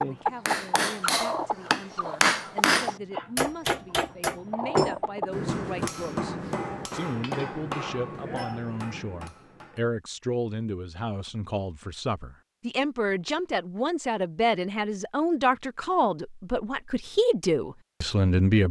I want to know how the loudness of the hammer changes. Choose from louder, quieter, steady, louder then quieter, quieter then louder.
quieter.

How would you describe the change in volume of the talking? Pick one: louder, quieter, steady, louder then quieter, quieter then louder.
louder.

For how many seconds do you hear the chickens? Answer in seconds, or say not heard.
5 s.